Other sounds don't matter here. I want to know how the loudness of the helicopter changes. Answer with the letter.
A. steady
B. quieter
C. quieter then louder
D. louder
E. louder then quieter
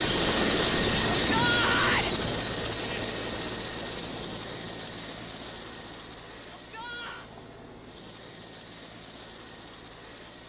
B.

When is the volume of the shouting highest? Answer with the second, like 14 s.
2 s.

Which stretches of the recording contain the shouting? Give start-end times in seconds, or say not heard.
1.1-2.1, 6.5-7.3.